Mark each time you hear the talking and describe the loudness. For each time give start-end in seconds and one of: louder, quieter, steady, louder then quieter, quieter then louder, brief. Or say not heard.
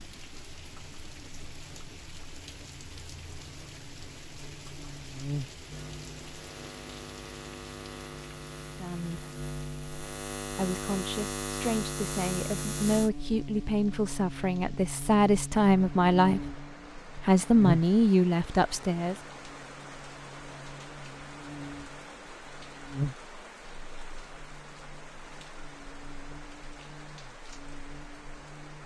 8.6-9.3 brief
10.5-16.5 louder
17.1-19.1 brief.